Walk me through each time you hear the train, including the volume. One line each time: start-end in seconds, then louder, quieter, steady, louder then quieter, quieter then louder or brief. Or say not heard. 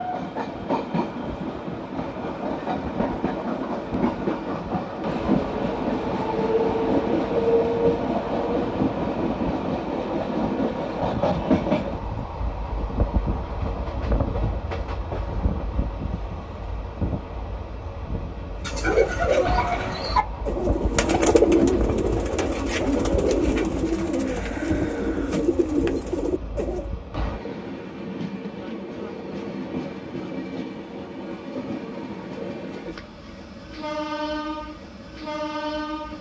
0.0-36.1 quieter.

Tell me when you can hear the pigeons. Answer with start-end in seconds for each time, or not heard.
18.6-26.9.